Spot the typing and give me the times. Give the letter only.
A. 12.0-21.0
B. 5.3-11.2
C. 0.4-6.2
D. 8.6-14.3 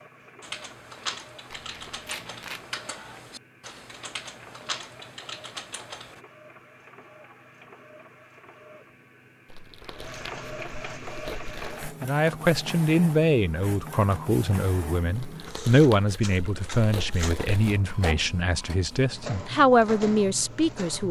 C.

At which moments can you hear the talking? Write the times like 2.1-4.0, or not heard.
12.0-21.0.